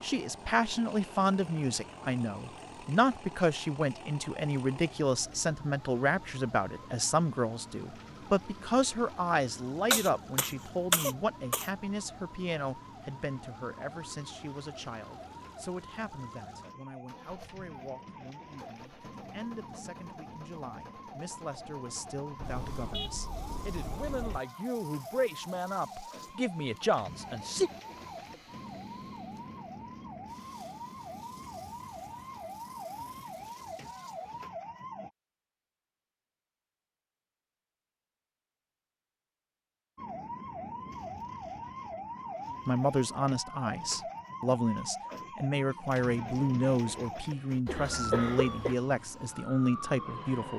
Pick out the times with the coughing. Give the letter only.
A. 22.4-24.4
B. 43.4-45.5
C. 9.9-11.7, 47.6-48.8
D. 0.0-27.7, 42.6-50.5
C.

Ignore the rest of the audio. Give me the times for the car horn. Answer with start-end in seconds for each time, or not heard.
22.4-24.4.